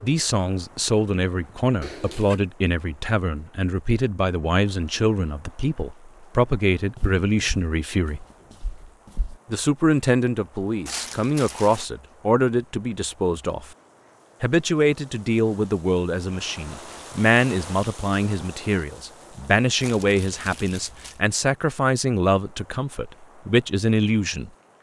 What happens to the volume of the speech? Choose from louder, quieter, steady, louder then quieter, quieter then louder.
steady.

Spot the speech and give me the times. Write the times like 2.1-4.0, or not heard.
0.0-8.2, 9.5-13.7, 14.4-24.5.